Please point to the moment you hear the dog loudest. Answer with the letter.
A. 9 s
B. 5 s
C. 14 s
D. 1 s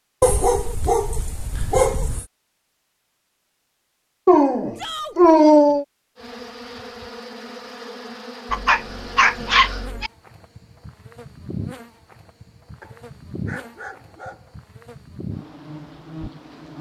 B.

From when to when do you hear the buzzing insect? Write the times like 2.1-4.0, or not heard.
6.2-16.7.